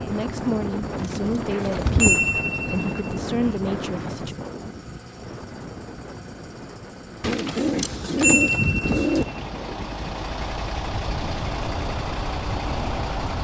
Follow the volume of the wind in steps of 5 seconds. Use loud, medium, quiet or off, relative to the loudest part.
loud, medium, medium.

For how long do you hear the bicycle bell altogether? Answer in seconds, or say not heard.
3 s.